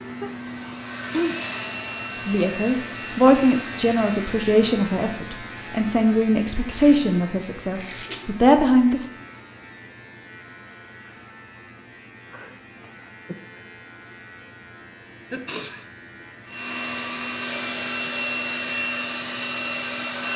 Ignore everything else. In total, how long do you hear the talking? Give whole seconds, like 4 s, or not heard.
7 s.